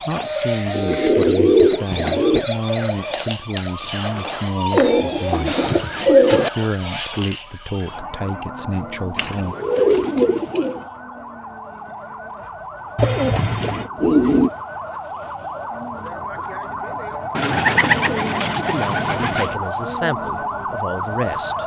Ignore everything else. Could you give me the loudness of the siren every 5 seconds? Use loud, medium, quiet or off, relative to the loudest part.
loud, medium, medium, loud, loud.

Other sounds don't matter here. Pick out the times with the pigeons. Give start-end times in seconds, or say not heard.
0.7-2.4, 4.7-6.5, 9.1-10.8, 12.9-14.5, 17.4-19.6.